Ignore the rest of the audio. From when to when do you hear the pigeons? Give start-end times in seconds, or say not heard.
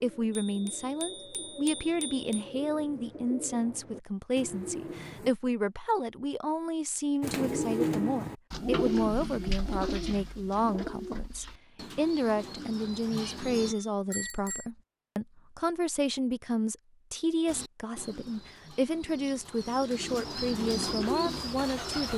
0.0-5.3, 7.2-13.8, 17.4-22.1.